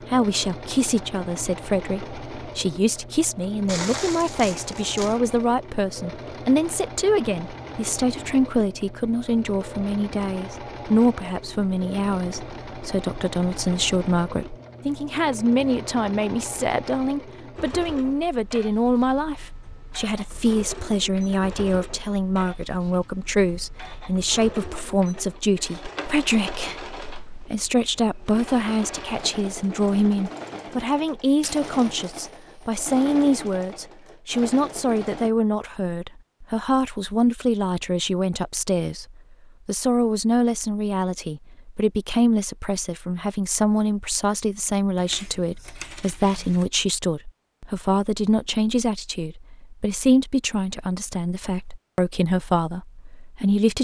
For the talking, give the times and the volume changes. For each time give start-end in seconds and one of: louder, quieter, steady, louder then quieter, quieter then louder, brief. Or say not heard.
0.1-53.7 steady.